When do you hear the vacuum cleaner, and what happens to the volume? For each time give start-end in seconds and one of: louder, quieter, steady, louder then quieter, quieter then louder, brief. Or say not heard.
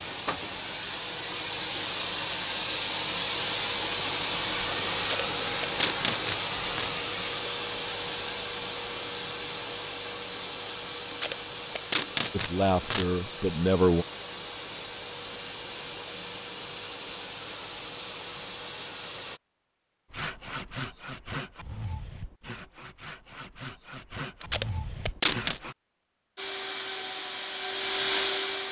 0.0-19.4 quieter
26.4-28.6 brief.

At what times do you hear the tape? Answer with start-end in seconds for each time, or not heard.
5.0-6.9, 11.1-13.1, 24.4-25.6.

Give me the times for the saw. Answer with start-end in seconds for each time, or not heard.
20.1-25.8.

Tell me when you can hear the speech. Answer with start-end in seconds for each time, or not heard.
12.3-14.1.